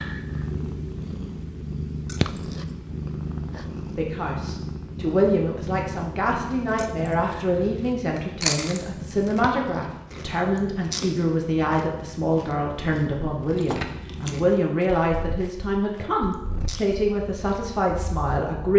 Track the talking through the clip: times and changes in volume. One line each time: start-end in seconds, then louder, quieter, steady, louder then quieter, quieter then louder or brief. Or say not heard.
4.0-18.7 steady.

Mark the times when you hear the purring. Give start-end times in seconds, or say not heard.
0.0-18.7.